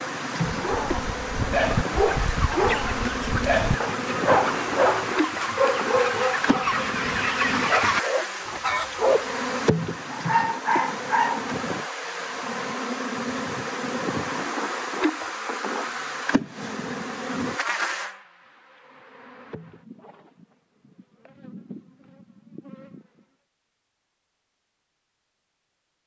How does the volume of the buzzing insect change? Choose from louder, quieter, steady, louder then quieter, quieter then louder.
quieter.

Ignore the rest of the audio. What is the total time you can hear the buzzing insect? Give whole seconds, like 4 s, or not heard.
23 s.